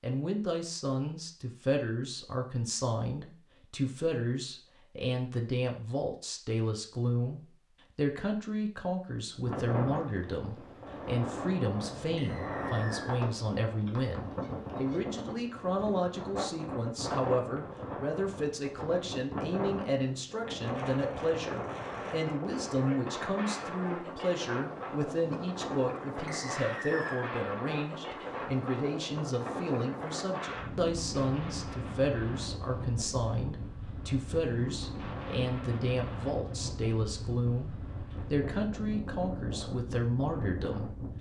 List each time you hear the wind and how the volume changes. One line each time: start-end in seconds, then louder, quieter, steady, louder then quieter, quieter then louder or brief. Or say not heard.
9.3-41.1 steady.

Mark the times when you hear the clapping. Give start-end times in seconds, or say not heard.
not heard.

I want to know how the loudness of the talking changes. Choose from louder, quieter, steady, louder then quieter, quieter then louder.
steady.